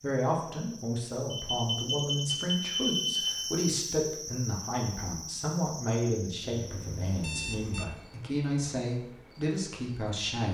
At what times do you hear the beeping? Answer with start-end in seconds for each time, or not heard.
1.3-3.4, 6.5-7.8.